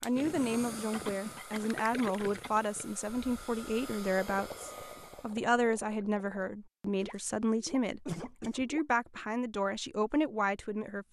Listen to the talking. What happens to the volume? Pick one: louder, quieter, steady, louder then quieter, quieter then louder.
steady.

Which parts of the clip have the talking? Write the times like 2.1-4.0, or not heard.
0.0-11.0.